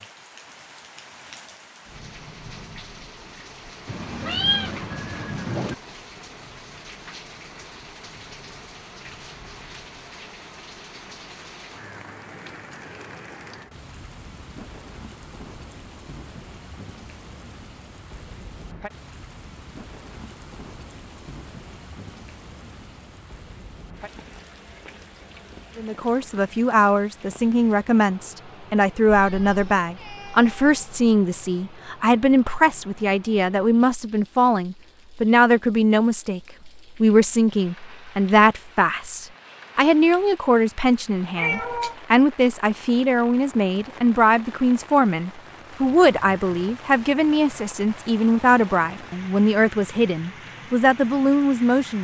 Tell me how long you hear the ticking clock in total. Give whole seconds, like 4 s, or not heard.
not heard.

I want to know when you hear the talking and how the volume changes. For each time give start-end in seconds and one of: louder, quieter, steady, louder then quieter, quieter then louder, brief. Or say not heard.
25.8-51.9 steady.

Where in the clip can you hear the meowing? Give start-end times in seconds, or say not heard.
3.9-5.8, 29.1-31.1, 41.4-42.0.